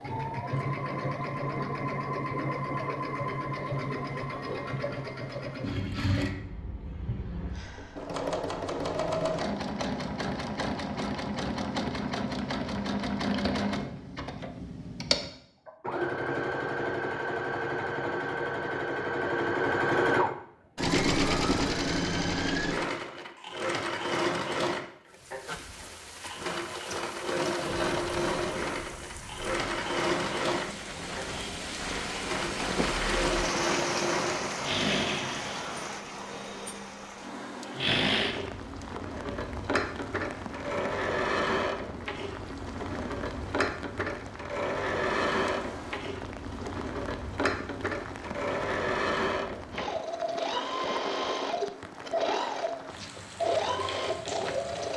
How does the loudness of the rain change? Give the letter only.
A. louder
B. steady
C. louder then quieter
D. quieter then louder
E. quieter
C.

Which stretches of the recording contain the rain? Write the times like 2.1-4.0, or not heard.
25.1-54.9.